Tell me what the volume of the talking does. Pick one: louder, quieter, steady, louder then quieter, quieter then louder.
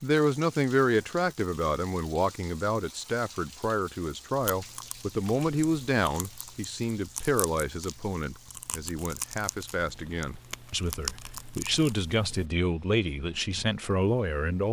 quieter then louder.